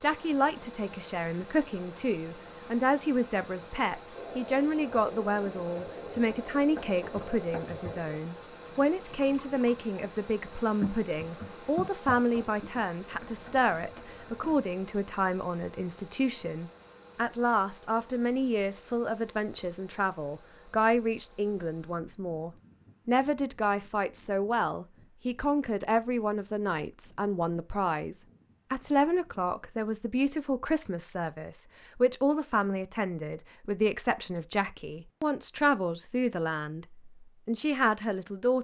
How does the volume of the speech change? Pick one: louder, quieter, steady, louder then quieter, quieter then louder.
steady.